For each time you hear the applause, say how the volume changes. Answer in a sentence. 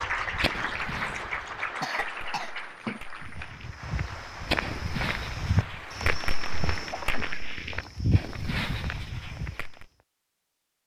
The applause can be heard from 0.0 to 7.4 s, getting quieter.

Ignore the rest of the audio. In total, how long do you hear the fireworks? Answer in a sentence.
The fireworks can be heard for 10 seconds in total.